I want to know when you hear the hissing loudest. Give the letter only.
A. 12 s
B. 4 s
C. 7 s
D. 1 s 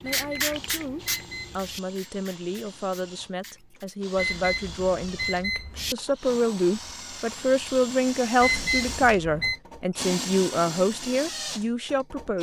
D.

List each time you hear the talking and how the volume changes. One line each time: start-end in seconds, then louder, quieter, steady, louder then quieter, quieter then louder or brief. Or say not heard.
0.0-12.3 louder.